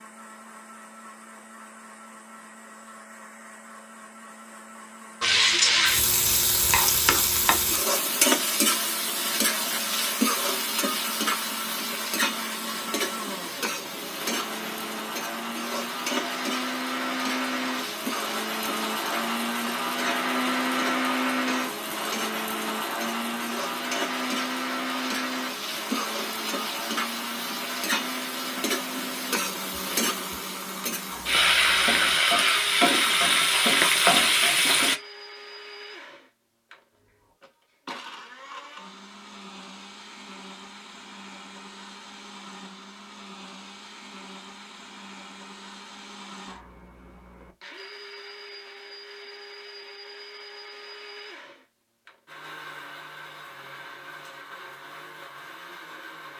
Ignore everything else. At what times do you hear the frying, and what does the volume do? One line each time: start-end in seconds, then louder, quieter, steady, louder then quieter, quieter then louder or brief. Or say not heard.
5.2-35.0 quieter then louder.